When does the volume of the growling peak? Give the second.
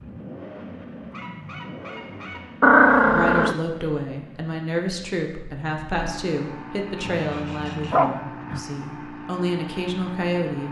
3 s.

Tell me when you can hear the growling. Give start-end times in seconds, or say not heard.
2.6-3.5, 7.0-8.6.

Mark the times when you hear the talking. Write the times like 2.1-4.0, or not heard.
3.0-10.6.